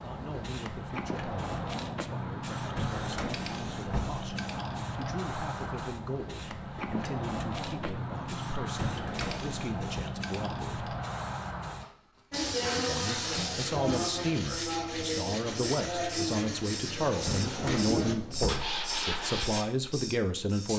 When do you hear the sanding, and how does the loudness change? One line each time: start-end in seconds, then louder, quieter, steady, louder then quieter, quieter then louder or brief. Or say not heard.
12.3-19.6 steady.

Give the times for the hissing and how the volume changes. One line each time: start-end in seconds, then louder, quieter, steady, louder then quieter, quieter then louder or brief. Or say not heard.
0.0-20.7 steady.